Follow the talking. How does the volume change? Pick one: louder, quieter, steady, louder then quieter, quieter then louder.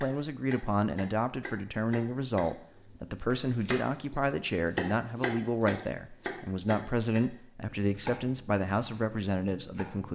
steady.